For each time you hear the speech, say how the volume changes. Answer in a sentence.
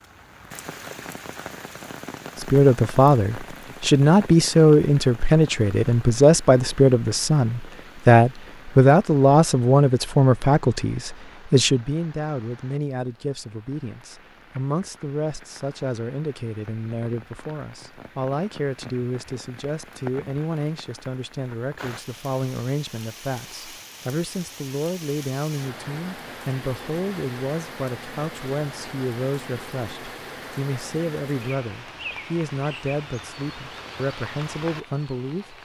You can hear the speech from 2.4 to 35.6 s, getting quieter.